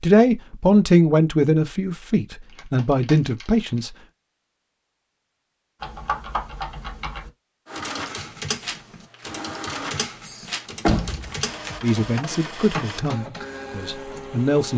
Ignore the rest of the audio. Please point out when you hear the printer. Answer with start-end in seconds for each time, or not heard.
7.7-14.7.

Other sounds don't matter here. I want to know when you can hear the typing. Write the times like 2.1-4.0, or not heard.
5.8-12.8.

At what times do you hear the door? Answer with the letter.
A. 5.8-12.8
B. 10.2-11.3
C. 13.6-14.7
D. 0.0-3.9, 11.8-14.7
B.